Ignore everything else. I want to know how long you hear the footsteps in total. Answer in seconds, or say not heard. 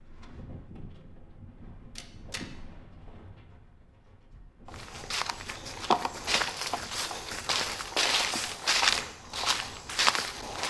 6 s.